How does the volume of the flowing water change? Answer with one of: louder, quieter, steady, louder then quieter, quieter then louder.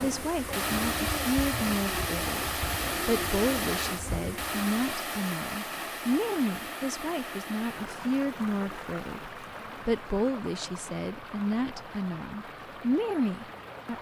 quieter.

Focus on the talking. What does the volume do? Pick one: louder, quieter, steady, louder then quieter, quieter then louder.
steady.